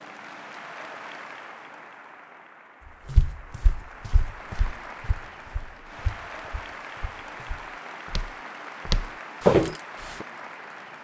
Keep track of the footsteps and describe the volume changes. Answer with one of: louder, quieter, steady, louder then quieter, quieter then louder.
quieter then louder.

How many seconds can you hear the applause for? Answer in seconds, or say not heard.
11 s.